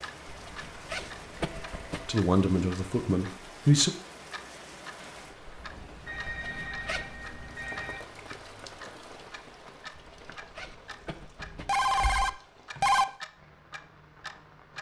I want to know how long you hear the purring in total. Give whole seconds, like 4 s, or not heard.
not heard.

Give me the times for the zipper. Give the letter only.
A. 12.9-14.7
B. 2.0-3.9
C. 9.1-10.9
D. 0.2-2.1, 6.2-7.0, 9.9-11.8
D.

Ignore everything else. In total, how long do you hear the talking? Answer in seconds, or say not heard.
2 s.